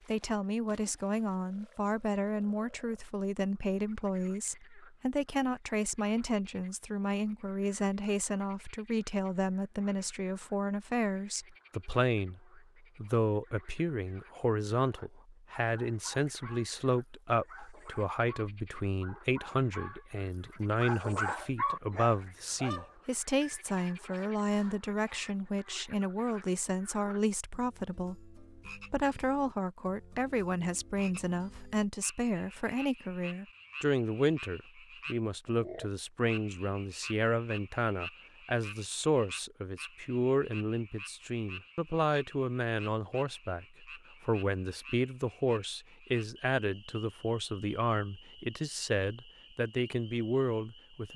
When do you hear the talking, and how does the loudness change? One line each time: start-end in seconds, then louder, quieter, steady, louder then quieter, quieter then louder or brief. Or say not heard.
0.1-51.1 steady.